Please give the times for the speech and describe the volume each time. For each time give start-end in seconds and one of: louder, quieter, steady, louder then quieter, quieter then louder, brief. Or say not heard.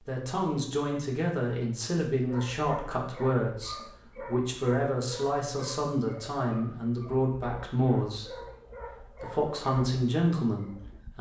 0.0-8.4 steady
9.1-11.1 brief.